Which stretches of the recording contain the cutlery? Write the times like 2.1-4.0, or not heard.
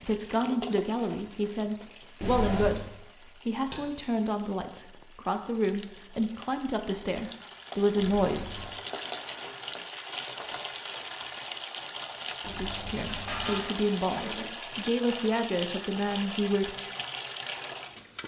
3.7-4.5, 13.1-14.4.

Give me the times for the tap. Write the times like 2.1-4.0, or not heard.
0.0-18.2.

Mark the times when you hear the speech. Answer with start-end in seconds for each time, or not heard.
0.0-8.6, 12.4-16.7.